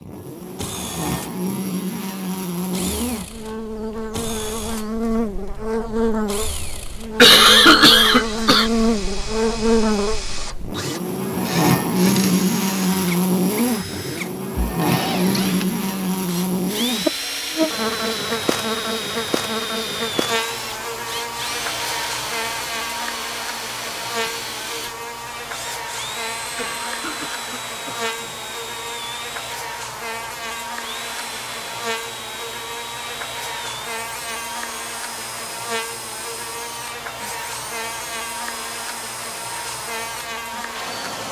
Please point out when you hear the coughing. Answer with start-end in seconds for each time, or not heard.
7.2-8.7, 26.6-28.4.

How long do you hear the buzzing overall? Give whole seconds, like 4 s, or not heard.
41 s.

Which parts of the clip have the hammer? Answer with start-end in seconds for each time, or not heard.
not heard.